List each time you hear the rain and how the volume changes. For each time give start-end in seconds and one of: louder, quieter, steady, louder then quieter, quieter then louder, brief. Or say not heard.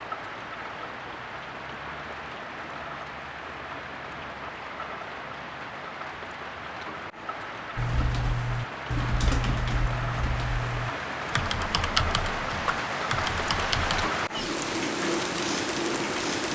0.0-16.5 louder.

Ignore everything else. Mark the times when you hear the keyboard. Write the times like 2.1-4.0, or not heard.
7.8-14.1.